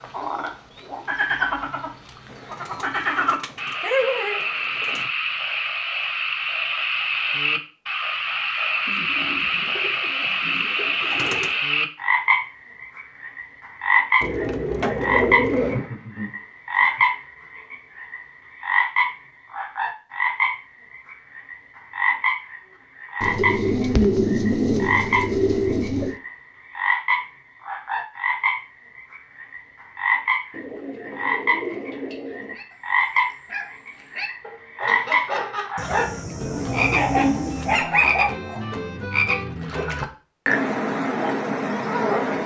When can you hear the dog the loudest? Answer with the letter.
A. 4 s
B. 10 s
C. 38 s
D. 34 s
C.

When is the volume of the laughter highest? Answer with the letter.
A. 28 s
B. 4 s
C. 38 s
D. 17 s
B.